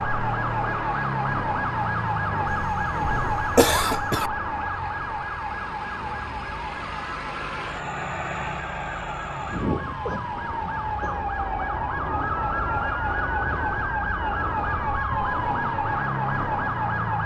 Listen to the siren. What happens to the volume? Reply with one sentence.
The loudness of the siren goes down, then up.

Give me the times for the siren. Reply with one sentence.
The siren can be heard from 0.0 to 17.2 s.